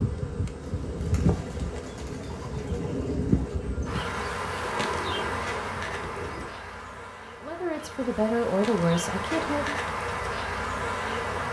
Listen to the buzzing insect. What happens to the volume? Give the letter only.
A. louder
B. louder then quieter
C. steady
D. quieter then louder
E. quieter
D.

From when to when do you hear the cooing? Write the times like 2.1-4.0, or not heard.
0.6-6.5.